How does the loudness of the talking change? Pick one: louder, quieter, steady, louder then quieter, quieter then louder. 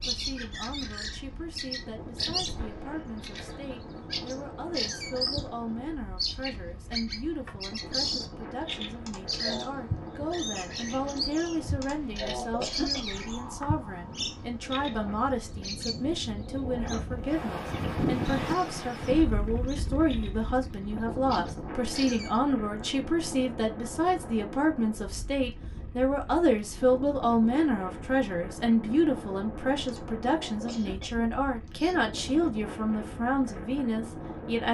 louder.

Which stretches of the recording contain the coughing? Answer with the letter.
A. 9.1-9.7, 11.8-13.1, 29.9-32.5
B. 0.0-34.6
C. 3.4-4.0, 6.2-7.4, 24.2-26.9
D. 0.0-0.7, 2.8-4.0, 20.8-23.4
A.